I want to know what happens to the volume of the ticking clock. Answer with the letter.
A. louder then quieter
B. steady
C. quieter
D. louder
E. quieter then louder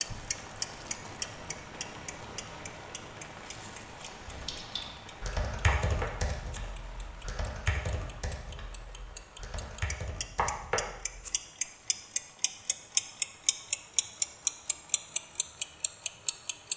E.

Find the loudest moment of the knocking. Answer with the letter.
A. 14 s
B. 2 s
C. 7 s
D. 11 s
D.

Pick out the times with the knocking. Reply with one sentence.
The knocking can be heard from 5.7 to 6.6 s and from 10.3 to 11.3 s.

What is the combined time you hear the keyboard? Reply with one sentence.
You can hear the keyboard for 7 seconds altogether.